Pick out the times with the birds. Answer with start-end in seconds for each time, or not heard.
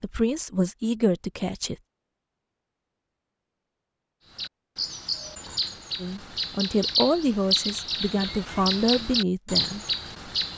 4.3-10.5.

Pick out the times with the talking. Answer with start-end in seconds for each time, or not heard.
0.0-1.8, 6.0-9.8.